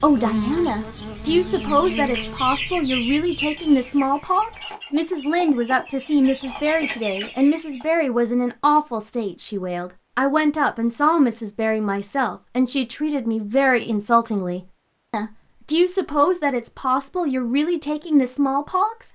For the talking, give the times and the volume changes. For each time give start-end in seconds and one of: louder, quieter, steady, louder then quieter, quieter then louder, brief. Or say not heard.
0.0-19.0 steady.